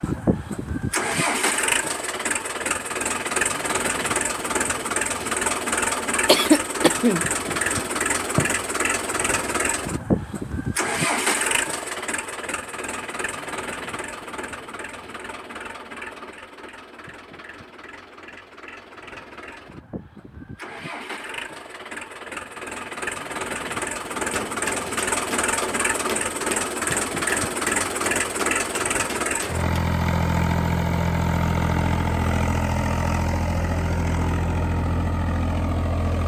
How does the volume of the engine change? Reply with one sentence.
The loudness of the engine goes down, then up.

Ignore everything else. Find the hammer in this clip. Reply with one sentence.
The hammer can be heard from 24.1 to 29.8 s.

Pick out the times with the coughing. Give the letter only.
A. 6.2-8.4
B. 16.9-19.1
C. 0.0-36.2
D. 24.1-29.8
A.